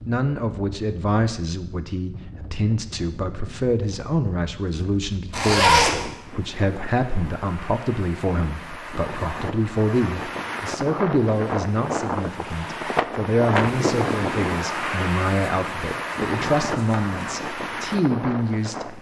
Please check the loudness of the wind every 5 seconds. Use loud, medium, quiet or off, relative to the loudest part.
quiet, medium, loud, loud.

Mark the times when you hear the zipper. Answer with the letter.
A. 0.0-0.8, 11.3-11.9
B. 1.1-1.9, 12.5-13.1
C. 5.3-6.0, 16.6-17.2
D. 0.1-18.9
C.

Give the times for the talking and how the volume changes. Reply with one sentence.
The talking can be heard from 0.1 to 18.9 s, at a steady volume.